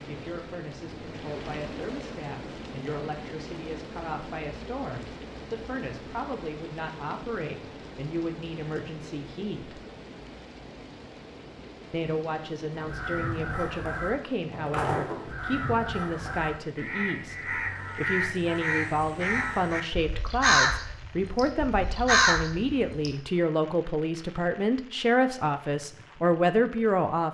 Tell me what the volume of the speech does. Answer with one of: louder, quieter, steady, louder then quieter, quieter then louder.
louder.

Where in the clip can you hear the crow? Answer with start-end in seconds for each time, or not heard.
12.8-23.1.